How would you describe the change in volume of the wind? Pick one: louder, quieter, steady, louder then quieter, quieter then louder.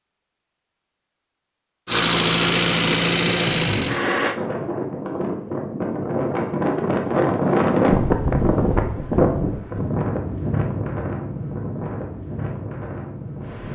louder then quieter.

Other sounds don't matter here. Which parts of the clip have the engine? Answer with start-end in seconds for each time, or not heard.
1.9-4.4.